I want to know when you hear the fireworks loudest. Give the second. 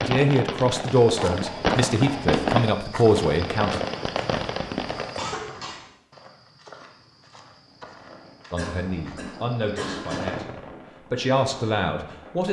2 s.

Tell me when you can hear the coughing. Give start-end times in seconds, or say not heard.
1.1-2.2, 5.2-5.9, 8.6-10.3.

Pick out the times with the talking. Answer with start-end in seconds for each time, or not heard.
0.0-3.8, 8.5-12.4.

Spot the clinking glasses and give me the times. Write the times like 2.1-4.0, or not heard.
not heard.